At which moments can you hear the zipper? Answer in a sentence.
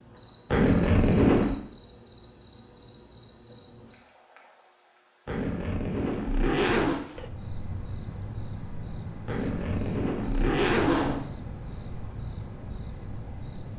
You can hear the zipper from 0.5 to 1.6 s, from 5.2 to 7.0 s and from 9.2 to 11.2 s.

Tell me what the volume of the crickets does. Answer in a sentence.
The loudness of the crickets goes up.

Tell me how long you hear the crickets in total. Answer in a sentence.
The crickets can be heard for 14 seconds in total.